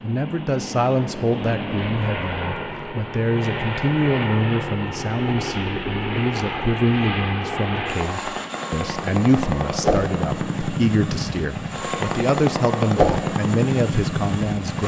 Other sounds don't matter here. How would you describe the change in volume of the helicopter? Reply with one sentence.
The volume of the helicopter goes up.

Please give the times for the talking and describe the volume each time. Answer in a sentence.
You can hear the talking from 0.0 to 14.8 s, at a steady volume.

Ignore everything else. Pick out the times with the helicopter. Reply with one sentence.
The helicopter can be heard from 0.0 to 14.8 s.